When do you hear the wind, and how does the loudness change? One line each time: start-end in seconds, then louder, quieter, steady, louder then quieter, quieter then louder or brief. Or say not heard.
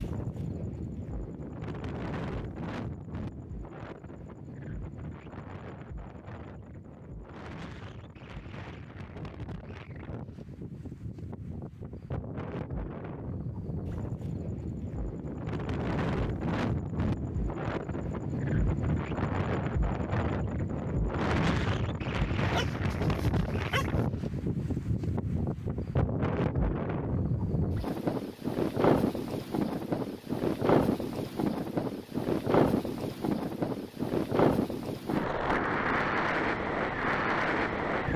0.0-38.1 louder.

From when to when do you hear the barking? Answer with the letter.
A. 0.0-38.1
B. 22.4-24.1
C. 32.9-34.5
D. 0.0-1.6
B.